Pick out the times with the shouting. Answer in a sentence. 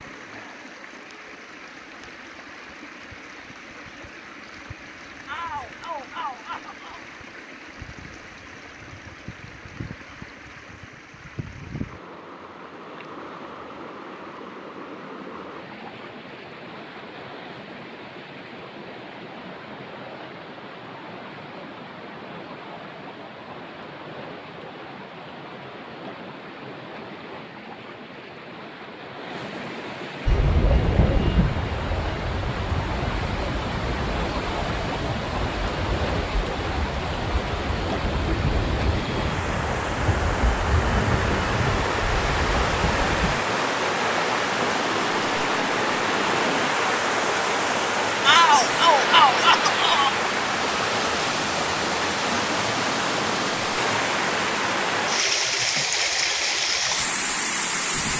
The shouting can be heard from 5.2 to 7.0 s and from 48.2 to 50.1 s.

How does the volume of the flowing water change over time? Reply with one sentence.
The loudness of the flowing water goes up.